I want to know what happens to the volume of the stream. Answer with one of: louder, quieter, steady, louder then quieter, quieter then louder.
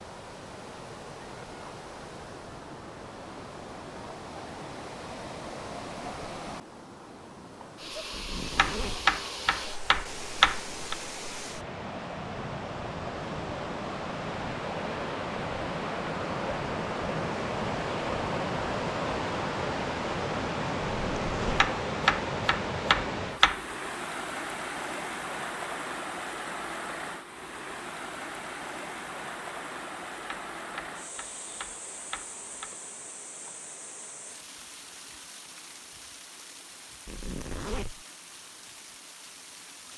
louder then quieter.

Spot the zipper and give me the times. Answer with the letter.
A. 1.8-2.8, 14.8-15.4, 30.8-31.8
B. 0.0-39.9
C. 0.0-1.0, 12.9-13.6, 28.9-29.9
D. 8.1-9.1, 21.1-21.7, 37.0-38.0
D.